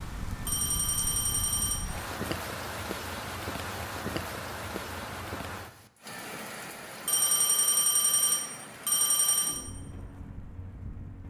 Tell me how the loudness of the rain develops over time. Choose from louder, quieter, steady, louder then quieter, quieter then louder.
quieter.